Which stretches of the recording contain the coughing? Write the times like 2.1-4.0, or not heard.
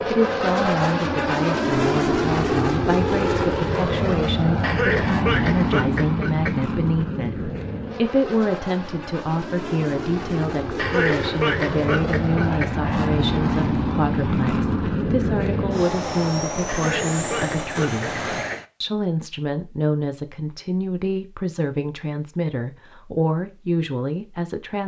4.6-6.6, 10.8-12.8, 16.6-18.6.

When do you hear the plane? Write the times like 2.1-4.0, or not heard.
0.0-18.6.